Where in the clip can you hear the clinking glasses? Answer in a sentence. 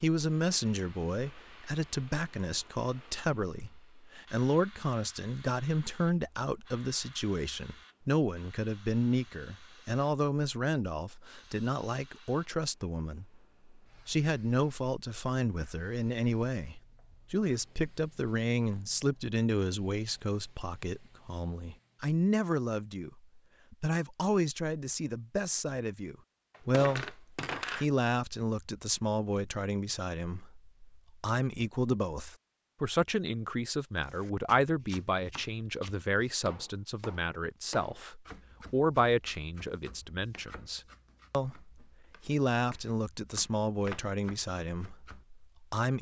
You can hear the clinking glasses from 26.5 to 27.9 s.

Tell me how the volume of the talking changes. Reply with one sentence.
The volume of the talking stays about the same.